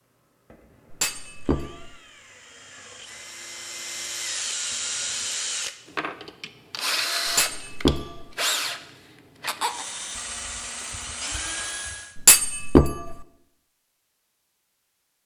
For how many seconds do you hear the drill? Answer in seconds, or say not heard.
12 s.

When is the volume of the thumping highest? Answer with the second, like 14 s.
13 s.